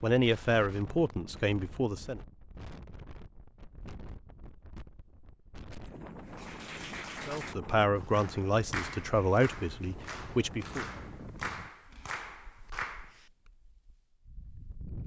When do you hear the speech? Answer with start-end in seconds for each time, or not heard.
0.0-2.2, 7.2-10.8.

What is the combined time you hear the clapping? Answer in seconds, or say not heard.
7 s.